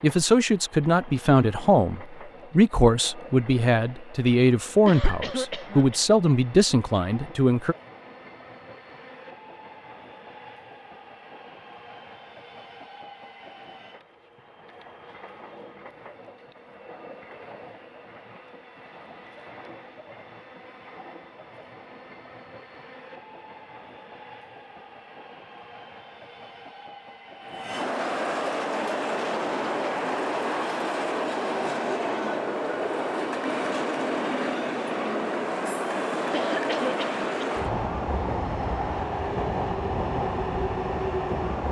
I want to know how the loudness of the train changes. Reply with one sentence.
The volume of the train goes up.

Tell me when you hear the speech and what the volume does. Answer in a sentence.
The speech can be heard from 0.0 to 7.8 s, at a steady volume.